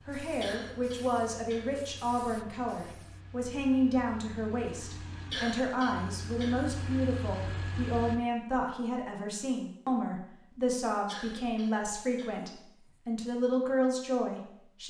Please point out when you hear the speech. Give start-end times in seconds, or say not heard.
0.1-14.8.